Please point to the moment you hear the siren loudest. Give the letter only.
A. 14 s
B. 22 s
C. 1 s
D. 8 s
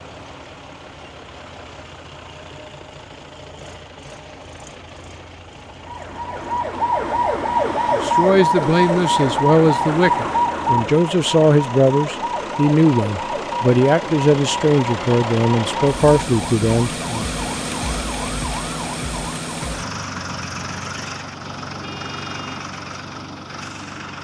D.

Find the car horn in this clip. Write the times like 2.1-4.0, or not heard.
21.8-22.6.